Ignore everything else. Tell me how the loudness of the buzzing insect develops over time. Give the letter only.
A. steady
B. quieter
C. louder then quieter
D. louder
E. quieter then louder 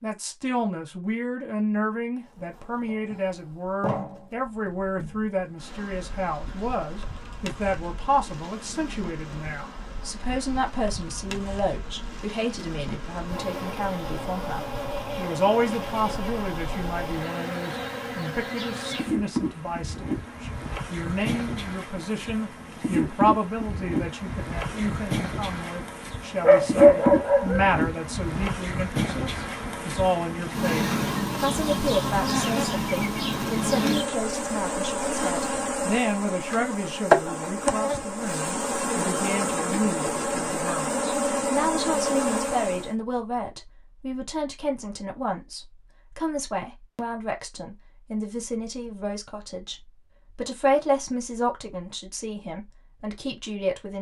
D.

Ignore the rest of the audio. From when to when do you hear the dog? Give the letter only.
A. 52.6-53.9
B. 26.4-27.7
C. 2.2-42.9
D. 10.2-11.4
B.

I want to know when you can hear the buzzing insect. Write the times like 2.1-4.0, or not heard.
2.2-42.9.